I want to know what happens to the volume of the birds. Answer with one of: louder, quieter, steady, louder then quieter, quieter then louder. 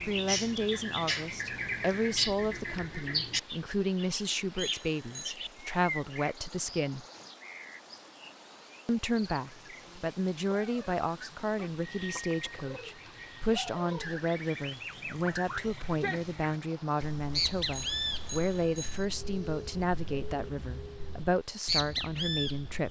quieter then louder.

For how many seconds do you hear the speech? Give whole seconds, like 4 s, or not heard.
21 s.